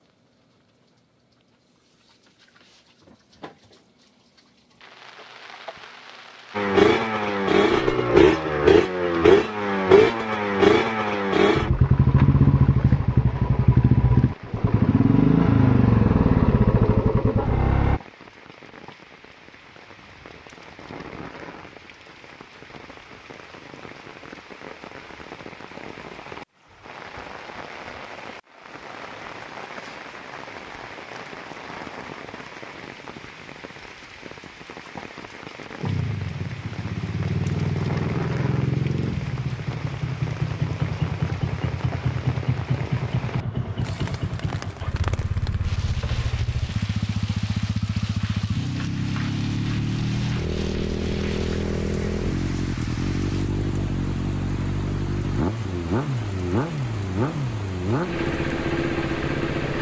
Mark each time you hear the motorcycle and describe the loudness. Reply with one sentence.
The motorcycle can be heard from 6.5 to 18.0 s, at a steady volume; and from 35.8 to 59.7 s, at a steady volume.